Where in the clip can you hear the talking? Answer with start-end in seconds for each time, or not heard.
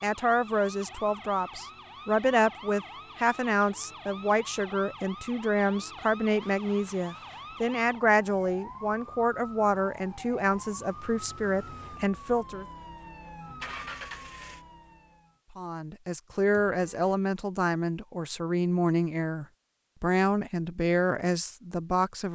0.0-12.7, 15.6-22.3.